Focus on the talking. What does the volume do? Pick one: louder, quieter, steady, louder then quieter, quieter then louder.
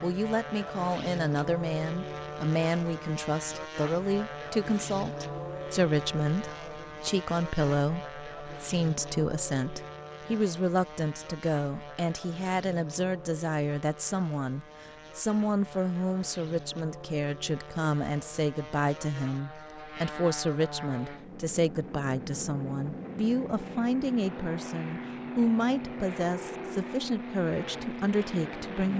steady.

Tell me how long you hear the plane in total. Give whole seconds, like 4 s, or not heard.
29 s.